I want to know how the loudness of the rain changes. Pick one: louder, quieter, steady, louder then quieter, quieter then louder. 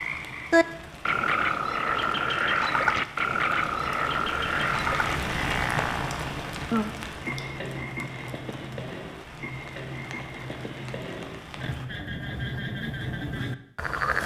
louder then quieter.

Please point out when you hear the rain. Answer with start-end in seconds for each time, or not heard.
0.0-11.9.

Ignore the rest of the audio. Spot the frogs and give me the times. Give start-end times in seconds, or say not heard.
0.0-14.2.